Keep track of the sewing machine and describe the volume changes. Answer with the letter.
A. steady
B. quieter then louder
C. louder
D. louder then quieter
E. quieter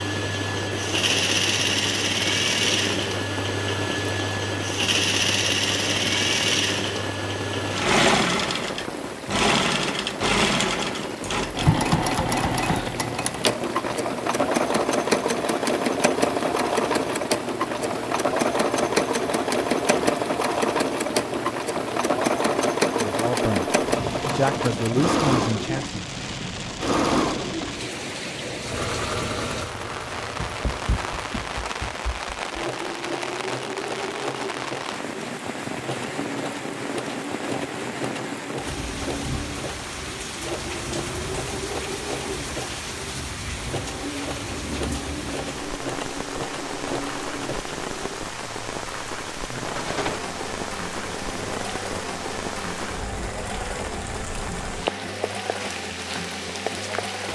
E.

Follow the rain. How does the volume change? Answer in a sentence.
The volume of the rain stays about the same.